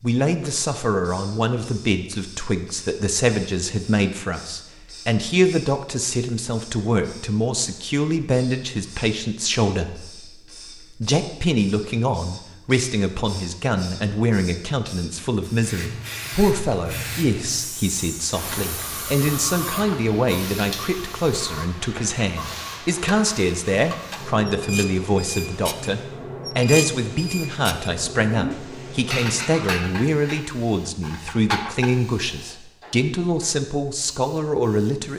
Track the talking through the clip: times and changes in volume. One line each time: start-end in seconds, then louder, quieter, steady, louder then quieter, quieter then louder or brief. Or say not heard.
0.0-35.1 steady.